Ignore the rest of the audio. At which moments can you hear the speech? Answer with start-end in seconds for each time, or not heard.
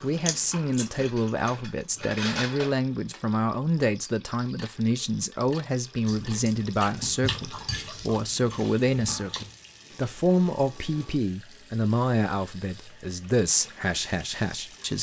0.0-14.9.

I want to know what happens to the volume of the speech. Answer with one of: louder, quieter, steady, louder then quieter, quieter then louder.
steady.